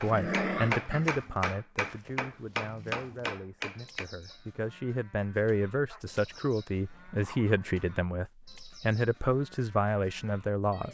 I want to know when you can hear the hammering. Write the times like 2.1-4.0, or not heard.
0.0-4.0.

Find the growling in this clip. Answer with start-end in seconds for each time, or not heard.
0.1-1.1, 5.8-7.8.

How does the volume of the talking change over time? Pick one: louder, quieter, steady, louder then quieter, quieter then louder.
quieter then louder.